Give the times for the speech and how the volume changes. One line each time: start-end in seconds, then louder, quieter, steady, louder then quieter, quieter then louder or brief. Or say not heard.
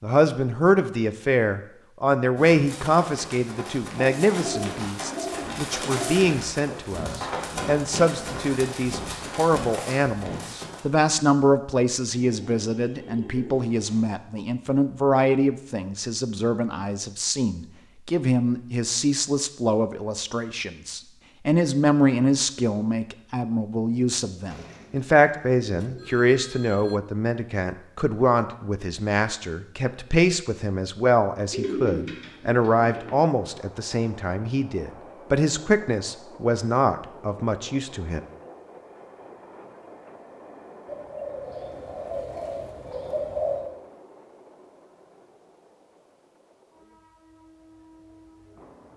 0.0-38.2 steady.